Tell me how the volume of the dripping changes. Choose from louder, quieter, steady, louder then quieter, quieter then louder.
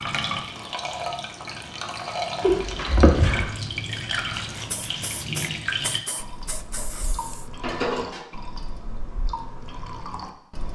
quieter.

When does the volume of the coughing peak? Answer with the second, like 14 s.
3 s.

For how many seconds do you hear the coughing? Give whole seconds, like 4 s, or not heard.
2 s.